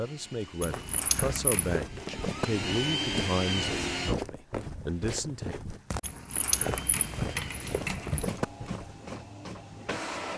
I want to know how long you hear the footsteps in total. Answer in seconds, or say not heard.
8 s.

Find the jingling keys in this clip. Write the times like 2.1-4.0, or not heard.
0.6-1.9, 6.0-8.3.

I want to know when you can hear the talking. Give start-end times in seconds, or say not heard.
0.0-5.5.